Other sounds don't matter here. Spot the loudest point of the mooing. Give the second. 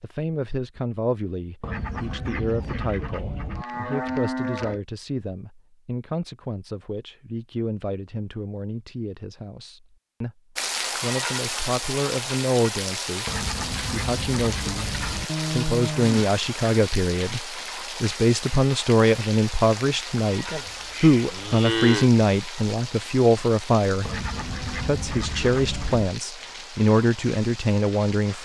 22 s.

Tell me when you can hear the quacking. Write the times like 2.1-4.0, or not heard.
1.6-3.6, 13.2-15.3, 24.1-26.1.